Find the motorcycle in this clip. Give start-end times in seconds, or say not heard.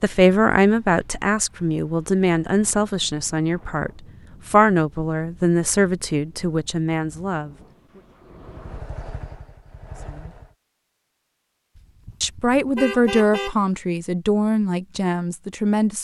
8.4-10.6.